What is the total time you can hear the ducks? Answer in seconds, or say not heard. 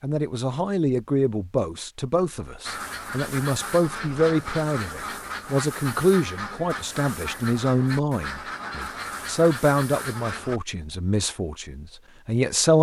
8 s.